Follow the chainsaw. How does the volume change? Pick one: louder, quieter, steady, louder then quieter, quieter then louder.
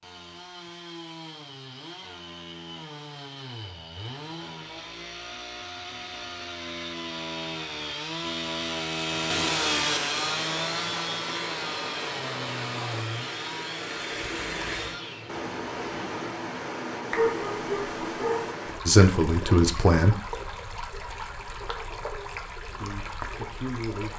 louder then quieter.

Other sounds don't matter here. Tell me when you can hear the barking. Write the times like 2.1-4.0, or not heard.
17.1-18.6.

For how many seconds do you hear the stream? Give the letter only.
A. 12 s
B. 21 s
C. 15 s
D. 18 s
C.